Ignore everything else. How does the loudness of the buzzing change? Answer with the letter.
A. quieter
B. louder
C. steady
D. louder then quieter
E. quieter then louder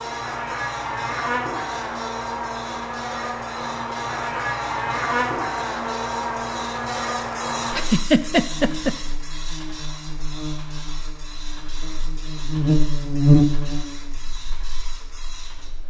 E.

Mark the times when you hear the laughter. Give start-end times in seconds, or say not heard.
7.7-8.9.